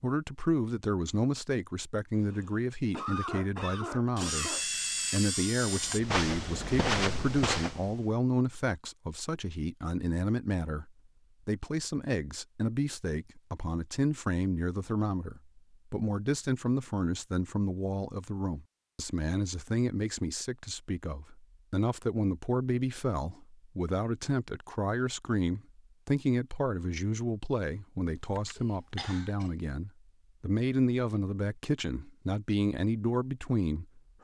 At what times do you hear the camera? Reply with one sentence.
You can hear the camera from 4.2 to 6.0 s and from 28.1 to 28.8 s.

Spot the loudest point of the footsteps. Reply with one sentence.
The volume of the footsteps peaks at 7 seconds.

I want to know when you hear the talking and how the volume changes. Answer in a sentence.
The talking can be heard from 0.0 to 34.0 s, at a steady volume.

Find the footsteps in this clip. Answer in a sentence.
The footsteps can be heard from 5.7 to 8.1 s.